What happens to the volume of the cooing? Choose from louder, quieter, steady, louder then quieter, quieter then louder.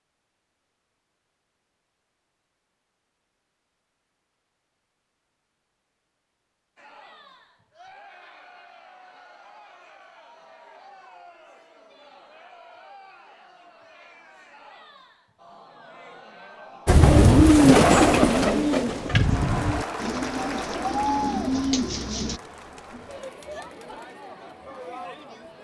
quieter then louder.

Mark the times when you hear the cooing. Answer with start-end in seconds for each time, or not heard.
16.9-22.4.